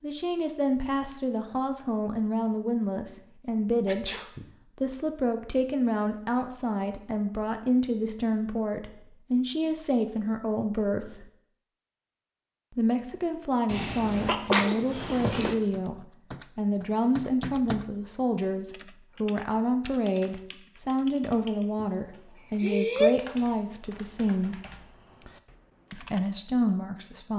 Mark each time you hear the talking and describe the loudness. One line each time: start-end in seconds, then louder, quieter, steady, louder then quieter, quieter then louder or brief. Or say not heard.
0.0-11.3 steady
12.8-24.6 steady
25.9-27.3 brief.